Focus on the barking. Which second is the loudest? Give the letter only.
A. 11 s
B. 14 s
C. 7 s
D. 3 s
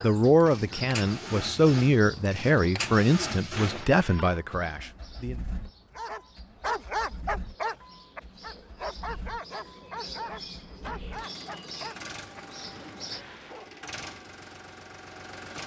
C.